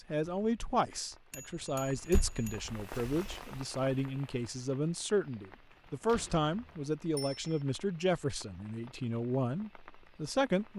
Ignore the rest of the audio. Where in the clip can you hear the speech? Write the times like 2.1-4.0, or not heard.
0.1-10.7.